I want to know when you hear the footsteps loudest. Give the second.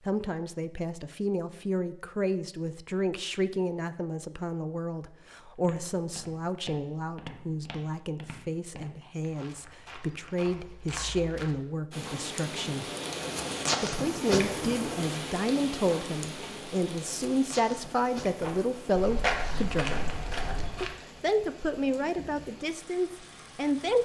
19 s.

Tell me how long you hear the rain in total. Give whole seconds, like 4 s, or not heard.
12 s.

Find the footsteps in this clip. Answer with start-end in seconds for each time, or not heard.
5.6-11.6, 18.4-20.9.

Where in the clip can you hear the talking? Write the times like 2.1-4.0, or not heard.
0.1-12.8, 13.8-20.1, 20.8-23.9.